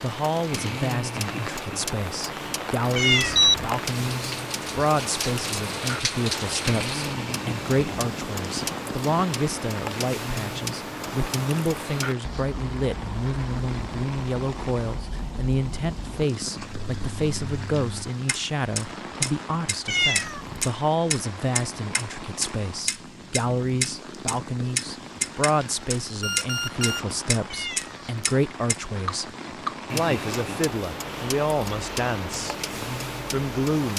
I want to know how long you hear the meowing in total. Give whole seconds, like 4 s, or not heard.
2 s.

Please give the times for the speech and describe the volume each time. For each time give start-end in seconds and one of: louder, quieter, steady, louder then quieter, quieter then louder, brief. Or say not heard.
0.0-29.3 steady
29.9-32.5 brief
33.3-33.9 brief.